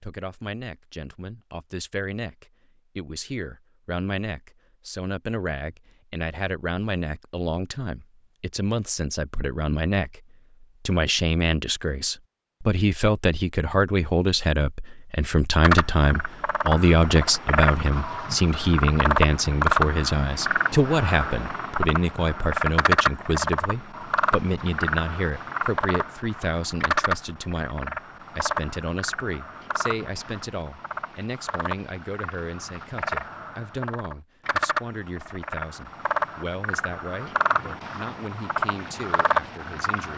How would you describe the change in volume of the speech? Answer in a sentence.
The loudness of the speech goes up, then down.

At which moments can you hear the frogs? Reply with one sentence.
The frogs can be heard from 15.6 to 40.1 s.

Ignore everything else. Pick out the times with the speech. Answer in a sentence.
You can hear the speech from 0.0 to 40.1 s.